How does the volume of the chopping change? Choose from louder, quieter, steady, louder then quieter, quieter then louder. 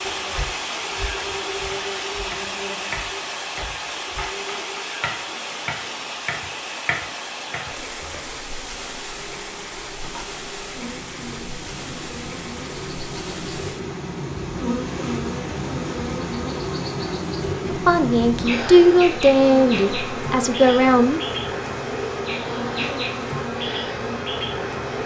quieter then louder.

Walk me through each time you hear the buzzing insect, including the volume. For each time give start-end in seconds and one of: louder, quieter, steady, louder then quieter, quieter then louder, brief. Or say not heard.
0.0-25.0 quieter then louder.